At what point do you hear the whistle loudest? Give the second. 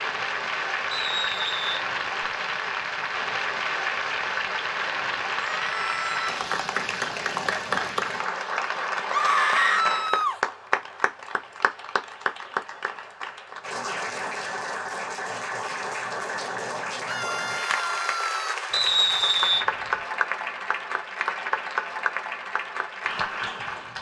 19 s.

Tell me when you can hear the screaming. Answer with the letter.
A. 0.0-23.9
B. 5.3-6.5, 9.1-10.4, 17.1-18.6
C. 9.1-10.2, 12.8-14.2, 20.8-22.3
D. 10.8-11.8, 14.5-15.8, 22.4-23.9
B.